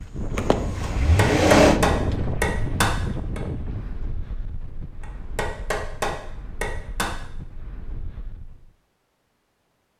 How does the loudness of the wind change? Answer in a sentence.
The volume of the wind goes down.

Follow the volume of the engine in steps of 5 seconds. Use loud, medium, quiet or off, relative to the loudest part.
loud, off.